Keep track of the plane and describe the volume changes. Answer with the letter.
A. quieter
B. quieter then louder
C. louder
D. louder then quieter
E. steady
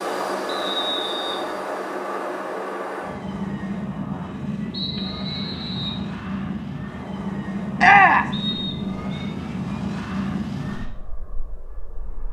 E.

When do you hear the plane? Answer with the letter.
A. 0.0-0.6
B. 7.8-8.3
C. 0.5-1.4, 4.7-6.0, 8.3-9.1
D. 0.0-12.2
D.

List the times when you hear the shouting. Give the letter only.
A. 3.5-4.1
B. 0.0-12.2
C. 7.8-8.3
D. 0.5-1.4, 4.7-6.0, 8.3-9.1
C.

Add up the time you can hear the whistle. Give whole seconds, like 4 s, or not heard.
3 s.